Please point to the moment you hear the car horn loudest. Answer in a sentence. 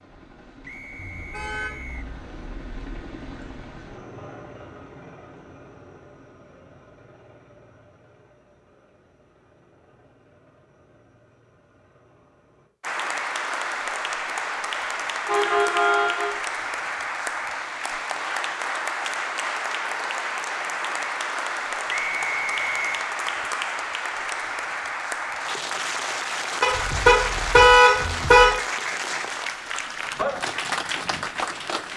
The volume of the car horn peaks at 28 seconds.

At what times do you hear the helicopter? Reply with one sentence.
The helicopter can be heard from 0.0 to 12.7 s.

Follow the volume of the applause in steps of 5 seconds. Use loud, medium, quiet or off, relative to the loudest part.
off, off, loud, loud, loud, loud, loud.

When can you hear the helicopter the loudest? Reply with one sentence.
The volume of the helicopter peaks at 3 seconds.